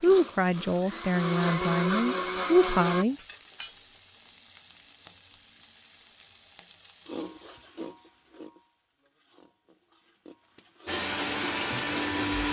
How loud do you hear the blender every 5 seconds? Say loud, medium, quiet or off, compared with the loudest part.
loud, off, loud.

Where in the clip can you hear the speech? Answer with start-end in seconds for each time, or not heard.
0.0-3.1.